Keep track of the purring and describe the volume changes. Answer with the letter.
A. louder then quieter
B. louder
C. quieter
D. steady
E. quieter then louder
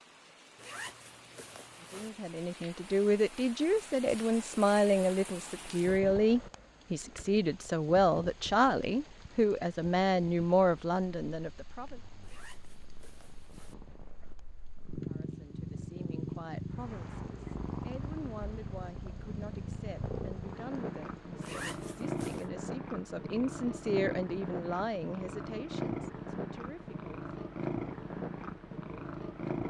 B.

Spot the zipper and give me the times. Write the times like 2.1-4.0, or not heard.
0.6-2.1, 12.2-13.8, 21.4-22.4.